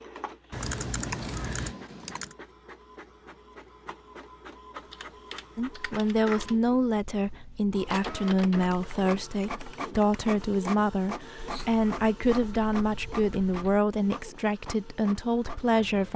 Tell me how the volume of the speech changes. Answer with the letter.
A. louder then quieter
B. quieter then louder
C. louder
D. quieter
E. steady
E.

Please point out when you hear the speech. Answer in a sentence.
You can hear the speech from 5.5 to 16.1 s.